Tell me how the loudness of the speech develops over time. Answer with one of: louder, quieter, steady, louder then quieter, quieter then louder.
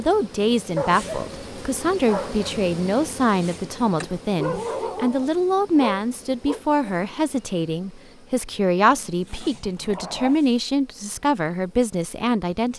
steady.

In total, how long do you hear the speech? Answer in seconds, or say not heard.
13 s.